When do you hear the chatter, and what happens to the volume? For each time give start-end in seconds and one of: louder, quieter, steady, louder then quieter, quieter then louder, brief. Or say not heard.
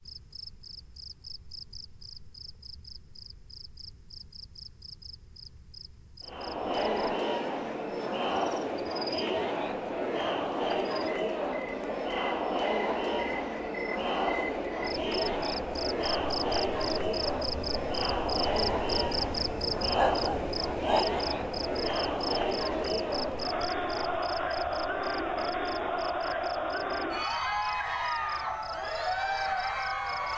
6.2-30.3 steady.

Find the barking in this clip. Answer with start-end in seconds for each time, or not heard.
19.9-21.2.